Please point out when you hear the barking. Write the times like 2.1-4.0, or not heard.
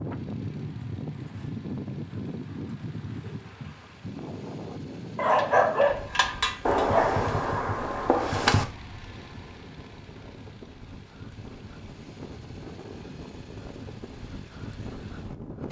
5.2-7.2.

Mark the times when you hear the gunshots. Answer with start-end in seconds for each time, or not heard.
6.7-8.7.